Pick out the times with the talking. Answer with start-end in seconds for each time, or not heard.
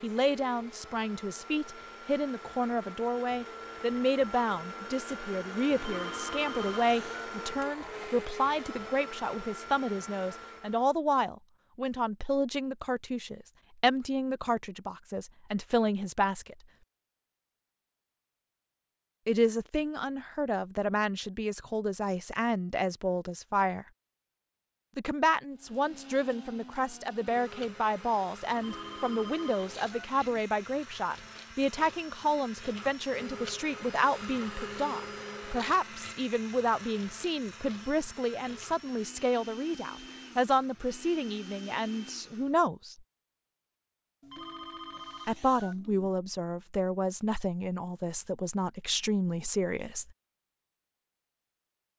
0.0-16.6, 19.2-23.9, 24.9-43.0, 45.2-50.1.